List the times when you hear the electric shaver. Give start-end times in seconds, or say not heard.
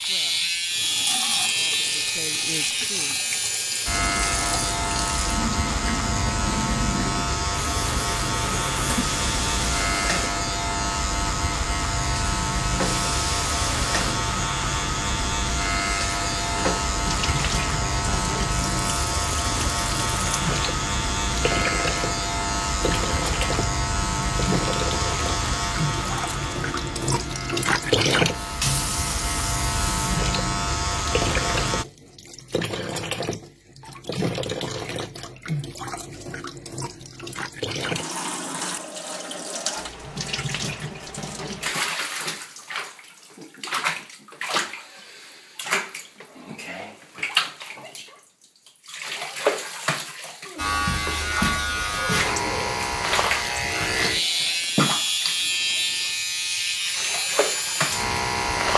0.0-31.9, 50.5-58.7.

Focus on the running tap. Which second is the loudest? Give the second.
28 s.